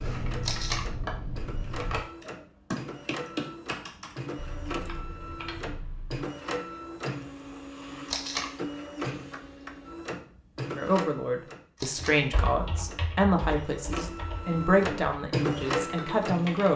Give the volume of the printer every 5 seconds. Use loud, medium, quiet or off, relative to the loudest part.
medium, medium, medium, loud.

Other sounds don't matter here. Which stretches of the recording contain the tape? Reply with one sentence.
The tape can be heard from 0.4 to 0.8 s, from 8.1 to 8.5 s and from 11.8 to 12.2 s.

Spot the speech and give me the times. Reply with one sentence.
The speech can be heard from 10.8 to 16.7 s.